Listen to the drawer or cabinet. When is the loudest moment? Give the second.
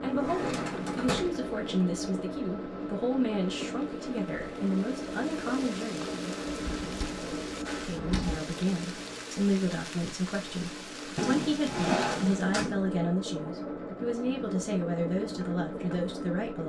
12 s.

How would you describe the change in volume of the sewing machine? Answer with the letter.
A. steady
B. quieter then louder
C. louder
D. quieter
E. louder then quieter
A.